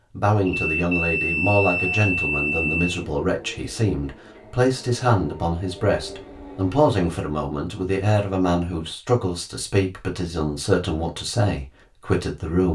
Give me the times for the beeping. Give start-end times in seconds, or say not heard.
0.5-2.9.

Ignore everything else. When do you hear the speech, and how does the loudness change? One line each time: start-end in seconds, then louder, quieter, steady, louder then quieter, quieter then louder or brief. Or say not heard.
0.1-12.7 steady.